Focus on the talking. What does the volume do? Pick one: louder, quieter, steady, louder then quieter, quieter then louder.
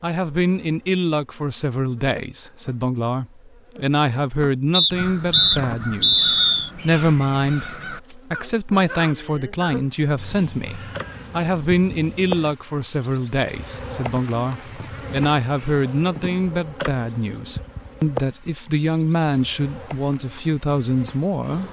steady.